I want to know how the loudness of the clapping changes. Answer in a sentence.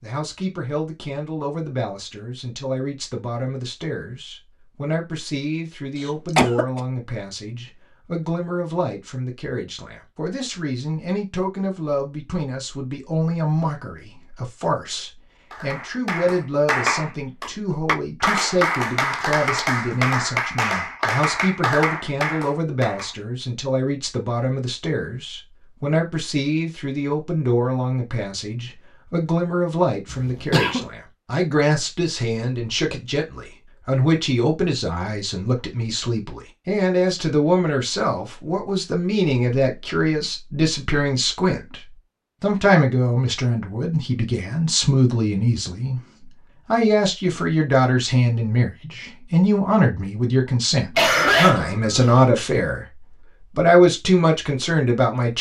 The volume of the clapping stays about the same.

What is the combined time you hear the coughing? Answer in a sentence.
The coughing can be heard for 3 seconds in total.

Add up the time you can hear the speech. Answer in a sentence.
The speech can be heard for 53 seconds in total.